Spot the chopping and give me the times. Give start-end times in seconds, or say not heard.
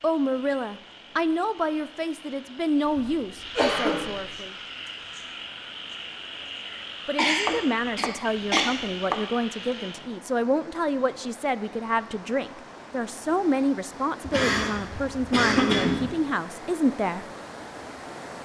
7.5-9.3.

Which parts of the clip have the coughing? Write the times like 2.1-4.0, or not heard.
2.9-4.3, 6.7-8.7, 14.2-16.1.